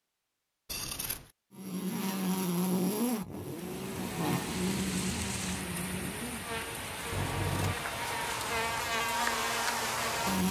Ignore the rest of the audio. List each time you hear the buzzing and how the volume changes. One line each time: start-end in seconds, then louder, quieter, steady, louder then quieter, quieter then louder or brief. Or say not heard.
1.6-10.4 quieter then louder.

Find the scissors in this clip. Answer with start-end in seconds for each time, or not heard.
0.7-1.3, 7.1-7.8.